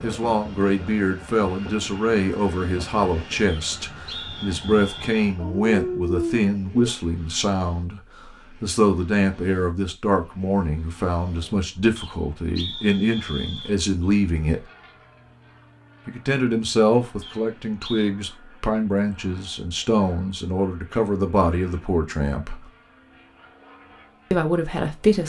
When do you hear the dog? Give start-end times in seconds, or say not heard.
5.4-6.9.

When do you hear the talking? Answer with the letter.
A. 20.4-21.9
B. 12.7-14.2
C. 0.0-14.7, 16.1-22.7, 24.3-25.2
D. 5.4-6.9
C.